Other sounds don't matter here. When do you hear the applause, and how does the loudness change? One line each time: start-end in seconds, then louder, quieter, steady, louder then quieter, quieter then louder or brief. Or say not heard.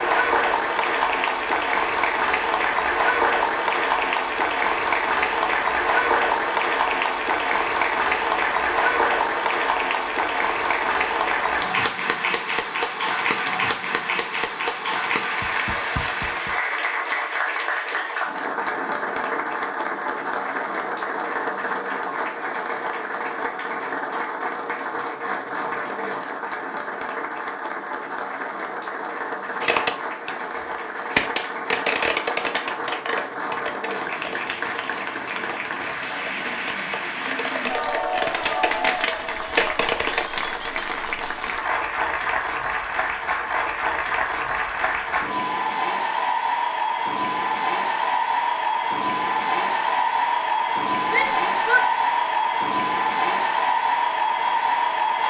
0.0-55.2 quieter then louder.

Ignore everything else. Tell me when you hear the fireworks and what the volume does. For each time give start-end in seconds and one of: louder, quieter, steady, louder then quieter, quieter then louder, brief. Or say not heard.
29.6-40.2 quieter then louder.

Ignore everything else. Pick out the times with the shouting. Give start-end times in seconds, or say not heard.
51.0-51.9.